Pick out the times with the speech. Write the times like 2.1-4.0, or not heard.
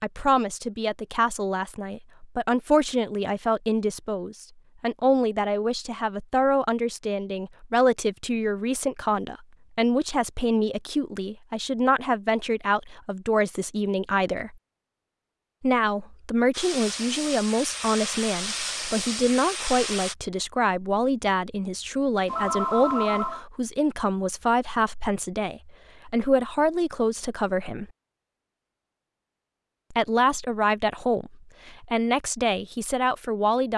0.0-14.6, 15.6-27.9, 29.9-33.7.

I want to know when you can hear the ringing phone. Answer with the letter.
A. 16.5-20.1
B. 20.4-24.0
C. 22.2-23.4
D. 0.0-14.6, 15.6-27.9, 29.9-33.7
C.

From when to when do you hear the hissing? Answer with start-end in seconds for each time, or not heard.
16.5-20.1.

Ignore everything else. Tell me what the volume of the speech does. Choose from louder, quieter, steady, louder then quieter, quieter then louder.
steady.